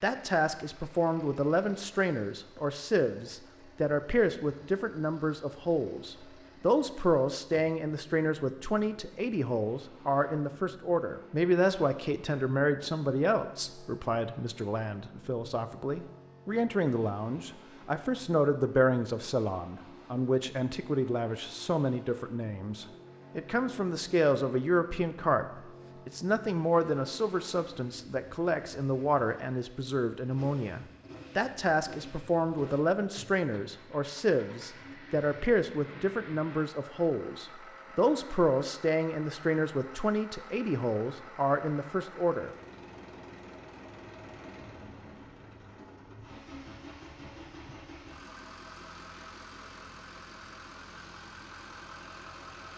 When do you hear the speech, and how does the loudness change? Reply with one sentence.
The speech can be heard from 0.0 to 25.4 s, at a steady volume; and from 26.1 to 42.5 s, at a steady volume.